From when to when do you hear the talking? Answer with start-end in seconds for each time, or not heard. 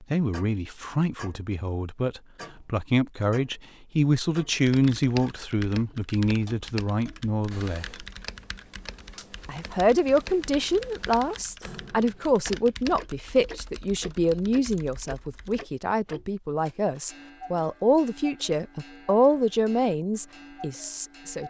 0.1-7.8, 9.4-21.4.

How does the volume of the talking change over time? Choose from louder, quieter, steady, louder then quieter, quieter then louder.
steady.